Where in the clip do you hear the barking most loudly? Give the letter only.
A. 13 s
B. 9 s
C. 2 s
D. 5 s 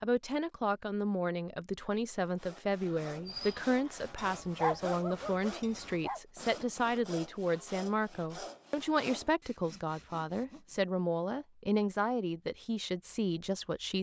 D.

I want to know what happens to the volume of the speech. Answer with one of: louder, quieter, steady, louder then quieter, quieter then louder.
steady.